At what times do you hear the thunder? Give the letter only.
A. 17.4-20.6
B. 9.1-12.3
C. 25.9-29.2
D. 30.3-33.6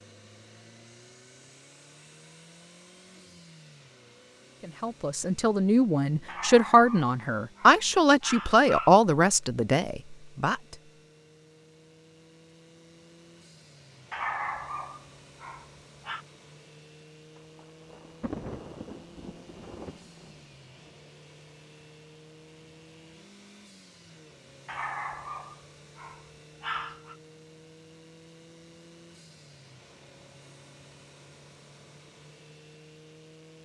A.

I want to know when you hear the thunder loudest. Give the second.
18 s.